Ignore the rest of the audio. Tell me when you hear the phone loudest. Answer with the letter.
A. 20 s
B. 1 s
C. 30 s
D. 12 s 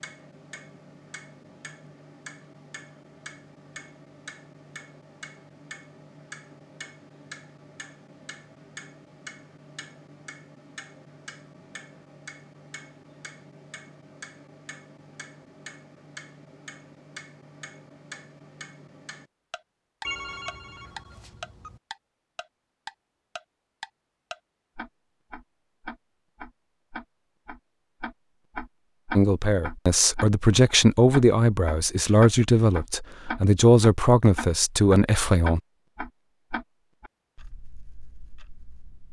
A.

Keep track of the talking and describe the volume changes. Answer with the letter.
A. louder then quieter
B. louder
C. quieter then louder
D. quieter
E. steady
E.